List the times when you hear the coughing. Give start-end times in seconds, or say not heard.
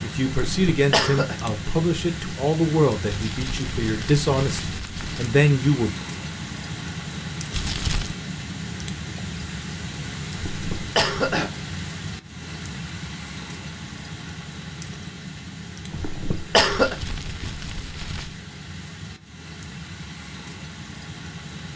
0.3-1.4, 10.3-11.5, 15.9-16.9.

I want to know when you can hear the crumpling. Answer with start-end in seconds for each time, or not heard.
3.0-5.3, 7.5-8.2, 16.6-18.4.